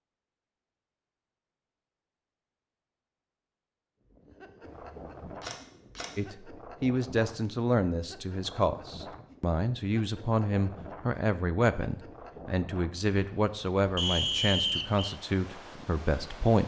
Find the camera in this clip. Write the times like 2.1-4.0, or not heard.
4.6-6.1.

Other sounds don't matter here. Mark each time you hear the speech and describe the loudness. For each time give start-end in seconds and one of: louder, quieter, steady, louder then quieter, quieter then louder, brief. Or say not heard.
6.2-16.6 steady.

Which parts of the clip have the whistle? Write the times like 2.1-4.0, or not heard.
13.9-15.2.